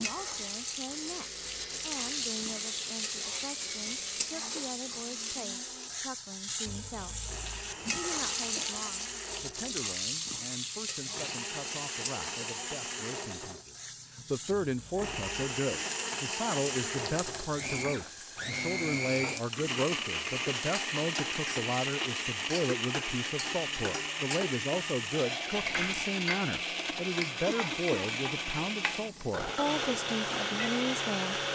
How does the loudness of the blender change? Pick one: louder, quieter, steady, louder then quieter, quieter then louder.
louder.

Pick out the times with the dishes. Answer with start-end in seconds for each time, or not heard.
not heard.